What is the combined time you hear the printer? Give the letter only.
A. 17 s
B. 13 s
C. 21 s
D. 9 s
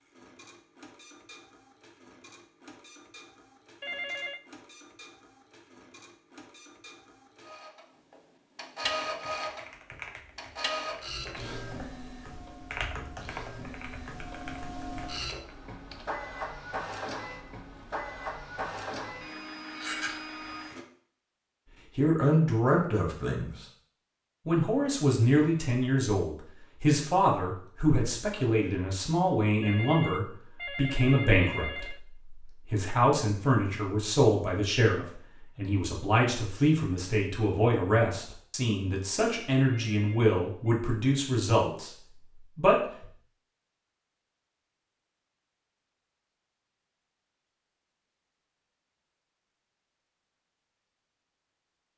C.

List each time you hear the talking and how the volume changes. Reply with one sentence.
The talking can be heard briefly from 21.9 to 23.6 s; and from 24.4 to 43.1 s, at a steady volume.